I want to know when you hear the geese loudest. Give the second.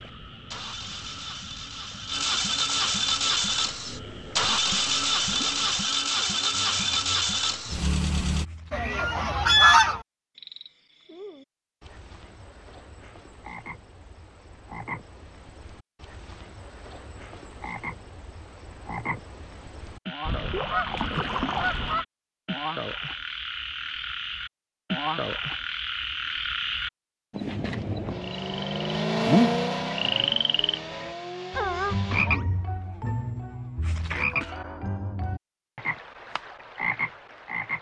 10 s.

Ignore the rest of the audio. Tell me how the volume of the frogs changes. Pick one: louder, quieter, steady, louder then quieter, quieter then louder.
louder.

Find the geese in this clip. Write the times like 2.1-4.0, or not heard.
8.7-10.0, 20.2-22.1.